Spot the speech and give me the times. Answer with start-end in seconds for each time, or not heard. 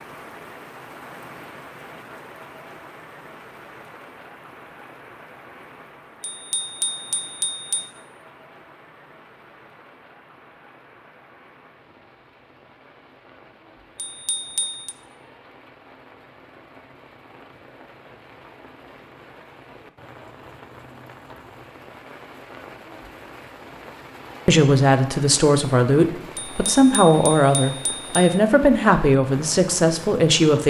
24.4-30.6.